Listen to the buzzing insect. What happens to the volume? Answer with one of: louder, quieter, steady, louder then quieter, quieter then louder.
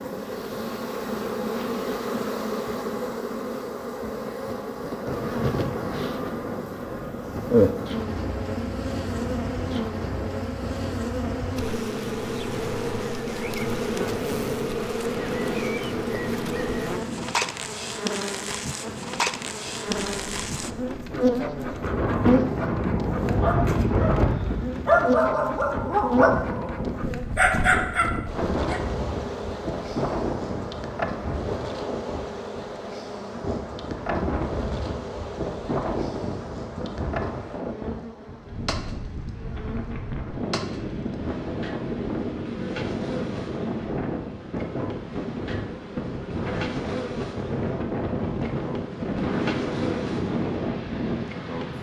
quieter.